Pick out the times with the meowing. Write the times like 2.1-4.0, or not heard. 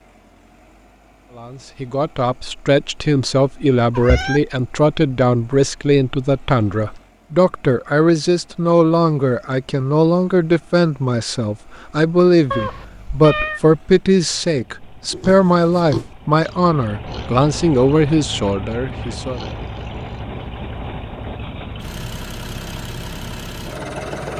4.0-4.4, 12.5-13.6.